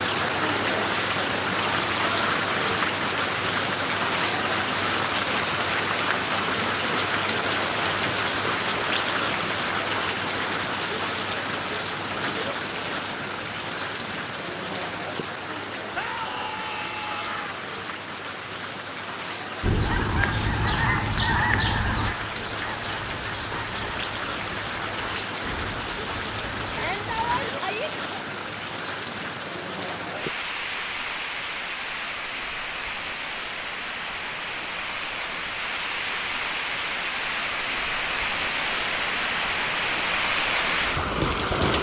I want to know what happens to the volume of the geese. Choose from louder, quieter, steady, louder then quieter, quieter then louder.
quieter.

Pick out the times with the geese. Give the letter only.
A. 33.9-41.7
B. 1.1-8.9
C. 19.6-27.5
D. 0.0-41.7
C.